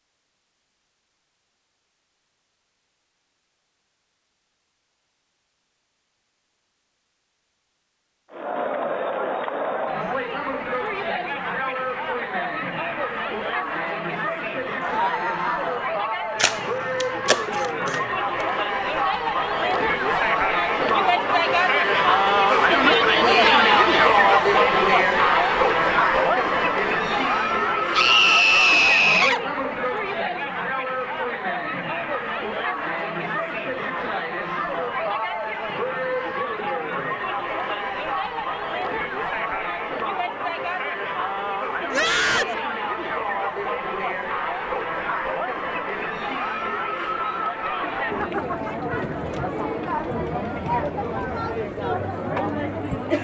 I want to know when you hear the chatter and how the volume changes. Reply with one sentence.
You can hear the chatter from 8.3 to 53.1 s, getting louder then quieter.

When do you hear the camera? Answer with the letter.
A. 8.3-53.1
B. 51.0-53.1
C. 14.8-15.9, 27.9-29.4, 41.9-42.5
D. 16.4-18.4
D.